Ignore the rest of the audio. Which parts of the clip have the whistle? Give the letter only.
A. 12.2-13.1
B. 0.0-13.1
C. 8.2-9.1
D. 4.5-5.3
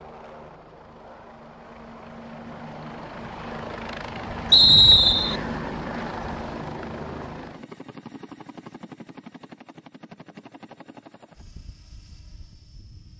D.